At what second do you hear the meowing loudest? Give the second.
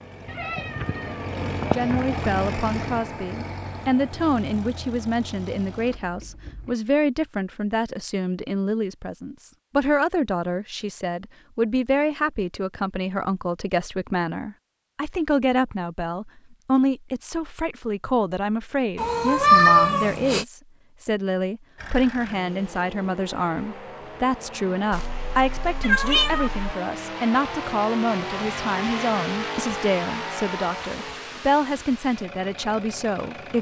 20 s.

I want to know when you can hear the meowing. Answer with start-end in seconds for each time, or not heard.
0.3-2.2, 18.9-20.4, 24.9-26.8.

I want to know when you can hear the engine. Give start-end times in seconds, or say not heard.
0.0-6.8, 21.8-33.5.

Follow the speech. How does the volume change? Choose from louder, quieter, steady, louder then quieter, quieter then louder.
steady.